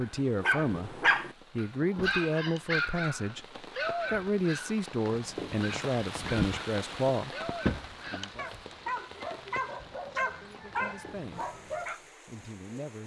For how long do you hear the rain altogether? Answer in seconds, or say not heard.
13 s.